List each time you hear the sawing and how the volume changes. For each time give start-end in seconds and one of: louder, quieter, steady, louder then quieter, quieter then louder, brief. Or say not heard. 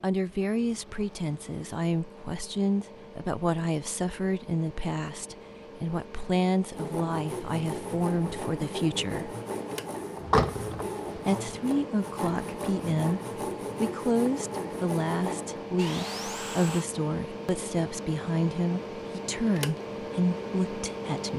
6.7-16.9 steady.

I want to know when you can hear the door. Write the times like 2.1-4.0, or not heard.
10.2-10.8.